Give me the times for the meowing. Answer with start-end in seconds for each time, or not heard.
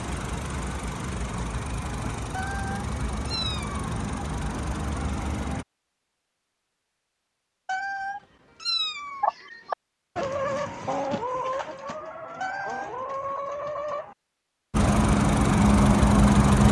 2.3-3.9, 7.7-9.3, 12.4-12.9.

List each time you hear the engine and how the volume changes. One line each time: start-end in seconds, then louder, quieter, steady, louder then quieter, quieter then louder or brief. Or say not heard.
0.0-5.7 steady
14.7-16.6 brief.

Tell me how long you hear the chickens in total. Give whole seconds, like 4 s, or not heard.
5 s.